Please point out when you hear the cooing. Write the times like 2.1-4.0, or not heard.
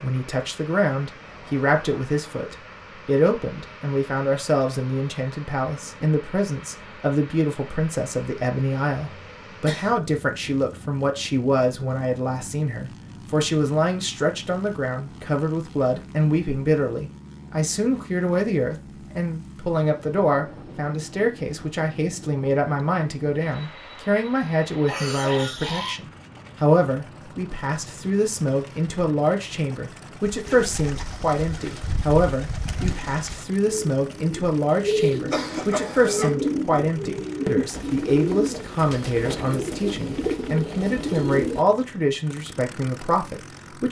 30.2-41.6.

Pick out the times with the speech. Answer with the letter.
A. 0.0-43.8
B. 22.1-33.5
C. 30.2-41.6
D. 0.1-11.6
A.